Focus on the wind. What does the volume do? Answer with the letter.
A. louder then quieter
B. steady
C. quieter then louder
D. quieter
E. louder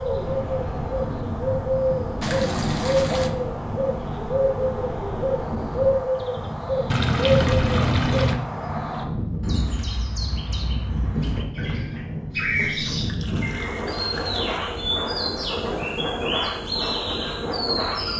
B.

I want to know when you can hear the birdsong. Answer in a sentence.
You can hear the birdsong from 0.0 to 18.1 s.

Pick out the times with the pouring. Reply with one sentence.
The pouring can be heard from 2.2 to 3.3 s, from 6.9 to 8.4 s and from 12.6 to 14.6 s.